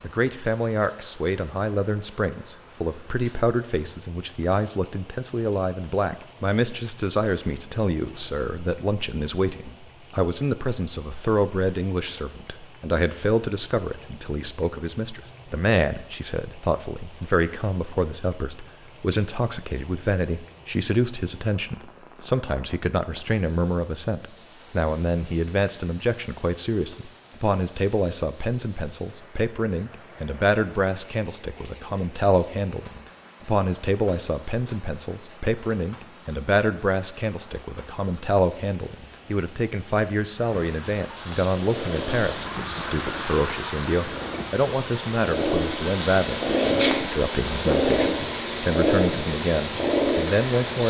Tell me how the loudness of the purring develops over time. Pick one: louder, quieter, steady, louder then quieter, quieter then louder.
louder.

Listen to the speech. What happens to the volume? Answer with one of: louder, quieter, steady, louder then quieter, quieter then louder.
steady.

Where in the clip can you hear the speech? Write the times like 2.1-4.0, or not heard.
0.0-50.8.